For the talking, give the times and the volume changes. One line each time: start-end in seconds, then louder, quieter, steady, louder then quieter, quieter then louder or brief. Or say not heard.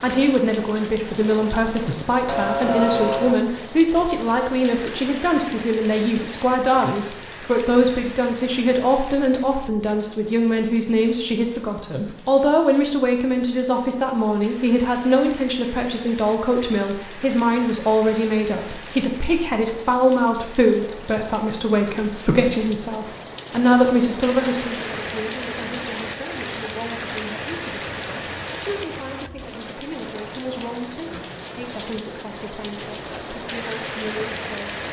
0.0-34.8 quieter.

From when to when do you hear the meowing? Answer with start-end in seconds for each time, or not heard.
2.2-3.4.